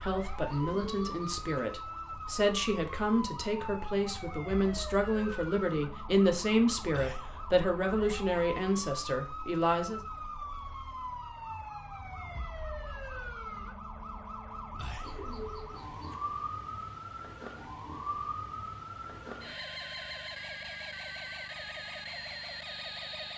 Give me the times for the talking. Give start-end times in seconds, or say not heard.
0.0-10.0.